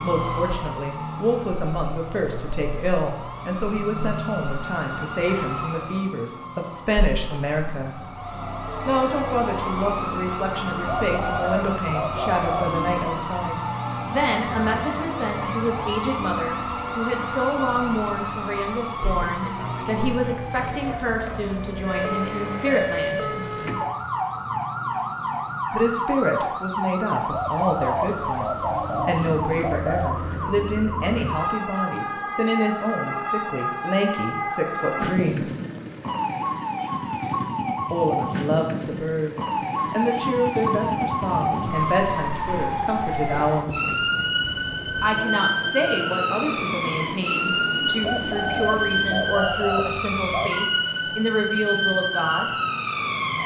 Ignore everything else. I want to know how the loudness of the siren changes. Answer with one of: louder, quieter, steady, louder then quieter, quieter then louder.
louder.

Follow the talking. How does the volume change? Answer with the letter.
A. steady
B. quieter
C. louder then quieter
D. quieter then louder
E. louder
A.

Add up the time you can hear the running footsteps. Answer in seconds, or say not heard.
not heard.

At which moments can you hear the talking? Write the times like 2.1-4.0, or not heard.
0.0-7.9, 8.8-23.3, 25.7-35.5, 37.9-43.7, 45.0-52.5.